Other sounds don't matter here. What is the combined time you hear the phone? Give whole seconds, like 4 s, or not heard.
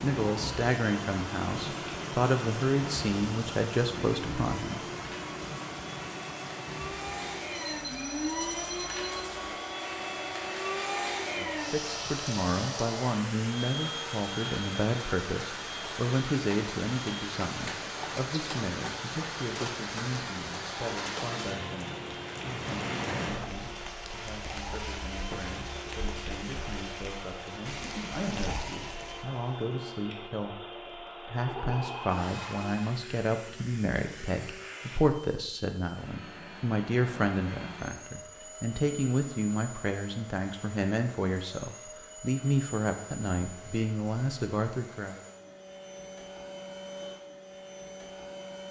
3 s.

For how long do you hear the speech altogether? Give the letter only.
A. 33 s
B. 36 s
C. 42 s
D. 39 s
D.